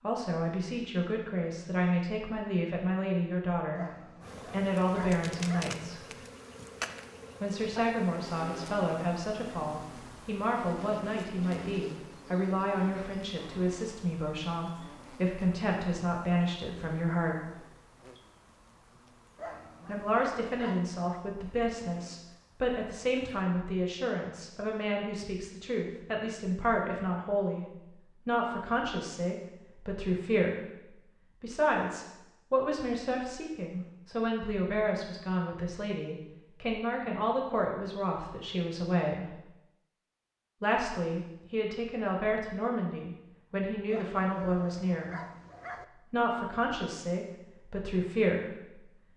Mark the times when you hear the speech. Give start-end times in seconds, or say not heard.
0.0-3.9, 4.5-6.0, 7.4-17.5, 19.9-39.4, 40.6-45.2, 46.0-49.0.